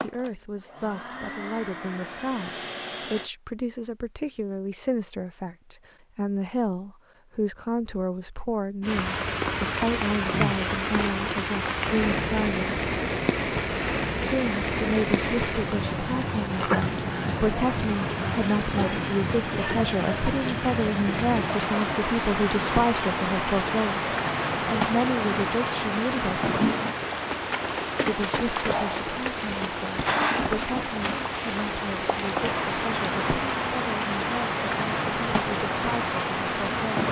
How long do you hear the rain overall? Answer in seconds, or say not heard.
28 s.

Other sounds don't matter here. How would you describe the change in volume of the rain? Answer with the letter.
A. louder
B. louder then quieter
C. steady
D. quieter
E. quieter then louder
C.